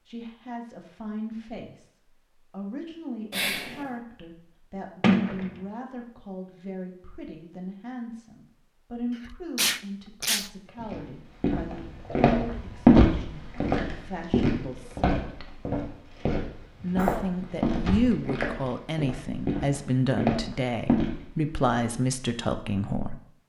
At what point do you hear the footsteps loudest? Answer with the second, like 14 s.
13 s.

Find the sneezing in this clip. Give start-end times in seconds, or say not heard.
3.3-4.0, 9.2-10.5, 16.9-17.4.